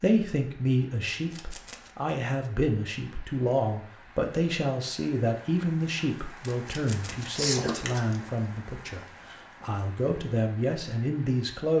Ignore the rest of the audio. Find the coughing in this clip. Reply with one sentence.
You can hear the coughing from 7.3 to 8.2 s.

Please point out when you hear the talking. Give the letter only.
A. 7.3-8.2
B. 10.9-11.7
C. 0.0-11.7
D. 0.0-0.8
C.